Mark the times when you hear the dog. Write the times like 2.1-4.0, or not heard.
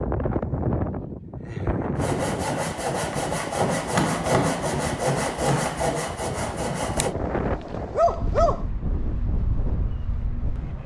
7.0-8.7.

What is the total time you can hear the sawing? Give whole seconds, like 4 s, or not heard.
5 s.